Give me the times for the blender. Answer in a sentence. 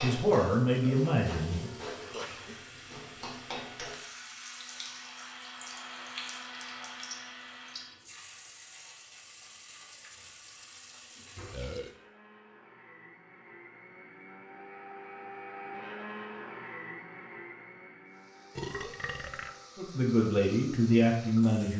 The blender can be heard from 1.9 to 8.1 s and from 10.7 to 19.8 s.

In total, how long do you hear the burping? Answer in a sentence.
The burping can be heard for 3 seconds in total.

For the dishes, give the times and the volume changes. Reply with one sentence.
The dishes can't be heard in this clip.